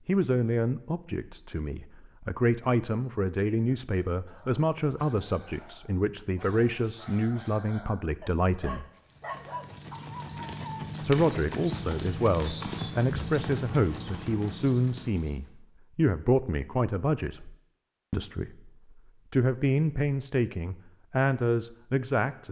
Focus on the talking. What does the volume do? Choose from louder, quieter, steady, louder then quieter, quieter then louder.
steady.